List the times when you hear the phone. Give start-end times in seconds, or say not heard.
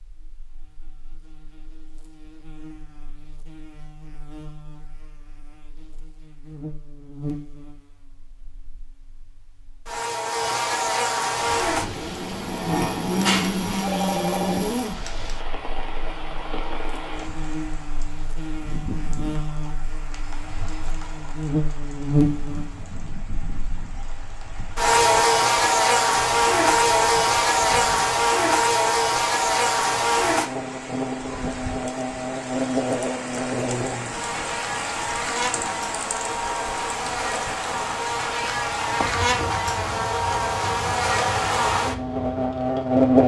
13.2-14.7.